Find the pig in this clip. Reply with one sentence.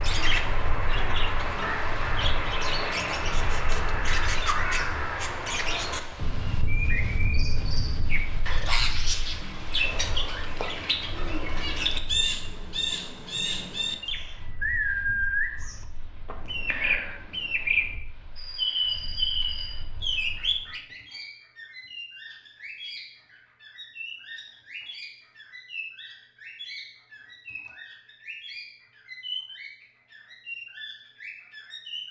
The pig can't be heard in this clip.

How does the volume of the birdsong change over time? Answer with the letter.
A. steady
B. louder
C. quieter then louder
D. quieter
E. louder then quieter
D.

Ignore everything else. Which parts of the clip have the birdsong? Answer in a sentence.
You can hear the birdsong from 0.0 to 32.0 s.